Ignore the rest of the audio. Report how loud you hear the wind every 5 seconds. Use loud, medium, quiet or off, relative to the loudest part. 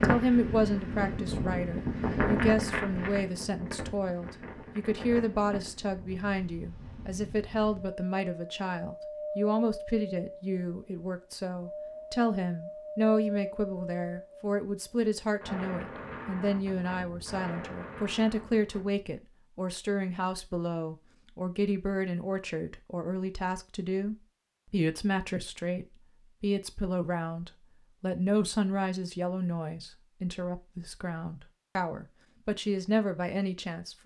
loud, medium, medium, medium, off, off, off.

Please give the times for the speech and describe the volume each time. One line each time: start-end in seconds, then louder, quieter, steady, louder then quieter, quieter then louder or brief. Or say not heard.
0.0-34.0 steady.